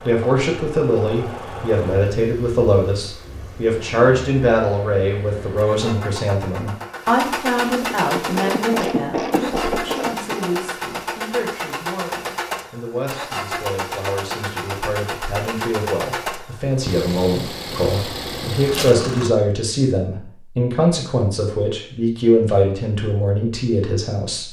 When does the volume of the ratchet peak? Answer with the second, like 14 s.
9 s.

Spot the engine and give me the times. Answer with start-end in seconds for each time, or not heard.
0.0-19.3.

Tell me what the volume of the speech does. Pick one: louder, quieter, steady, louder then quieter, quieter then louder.
quieter then louder.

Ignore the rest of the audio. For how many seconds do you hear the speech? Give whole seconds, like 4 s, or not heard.
24 s.